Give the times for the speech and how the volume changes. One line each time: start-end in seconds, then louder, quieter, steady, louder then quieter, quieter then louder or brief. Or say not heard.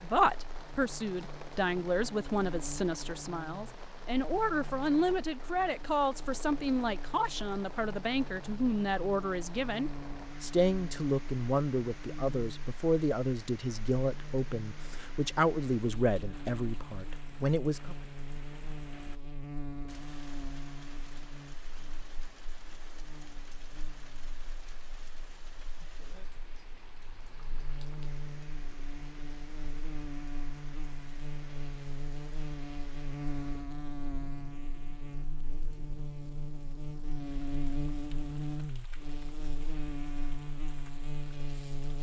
0.0-17.9 steady.